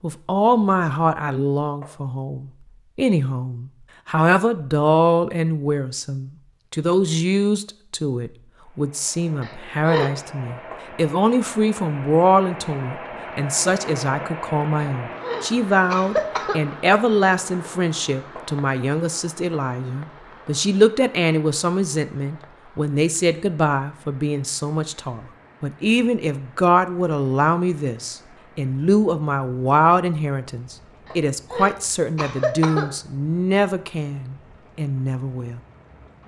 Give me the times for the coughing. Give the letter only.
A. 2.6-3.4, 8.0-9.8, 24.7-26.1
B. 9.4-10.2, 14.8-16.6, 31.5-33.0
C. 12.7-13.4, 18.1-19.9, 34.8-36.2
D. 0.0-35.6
B.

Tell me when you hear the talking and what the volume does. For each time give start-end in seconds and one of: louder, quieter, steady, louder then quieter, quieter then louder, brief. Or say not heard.
0.0-35.6 steady.